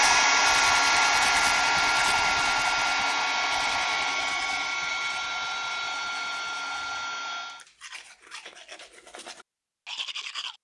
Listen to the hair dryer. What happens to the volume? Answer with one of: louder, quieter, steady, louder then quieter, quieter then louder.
quieter.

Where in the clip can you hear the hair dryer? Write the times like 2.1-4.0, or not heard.
0.0-7.7.